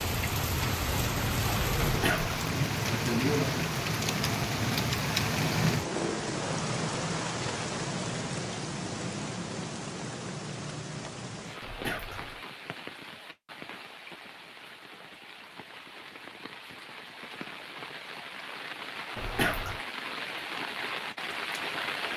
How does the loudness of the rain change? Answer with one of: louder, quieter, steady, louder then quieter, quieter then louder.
quieter then louder.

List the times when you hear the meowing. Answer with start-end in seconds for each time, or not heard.
1.8-2.4, 11.6-12.4, 19.1-19.8.